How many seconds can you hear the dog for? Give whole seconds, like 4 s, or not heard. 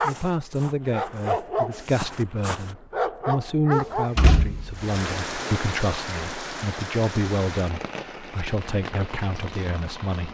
4 s.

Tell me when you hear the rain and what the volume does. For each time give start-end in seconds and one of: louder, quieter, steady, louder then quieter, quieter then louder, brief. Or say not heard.
4.8-10.3 quieter.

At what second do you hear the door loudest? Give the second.
4 s.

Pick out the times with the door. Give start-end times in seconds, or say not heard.
3.7-5.6.